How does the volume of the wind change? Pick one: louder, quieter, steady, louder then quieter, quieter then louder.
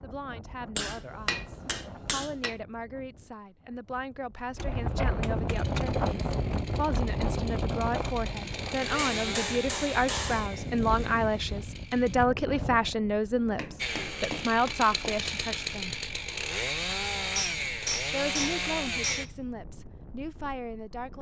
louder then quieter.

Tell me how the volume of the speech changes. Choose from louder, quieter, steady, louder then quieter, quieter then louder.
louder then quieter.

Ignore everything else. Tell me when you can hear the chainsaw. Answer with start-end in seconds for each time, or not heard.
5.5-12.2, 13.8-19.2.